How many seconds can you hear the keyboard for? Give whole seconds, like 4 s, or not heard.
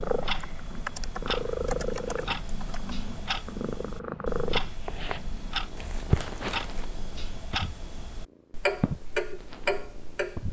3 s.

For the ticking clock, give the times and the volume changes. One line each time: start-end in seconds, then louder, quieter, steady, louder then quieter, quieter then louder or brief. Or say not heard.
0.0-10.4 louder.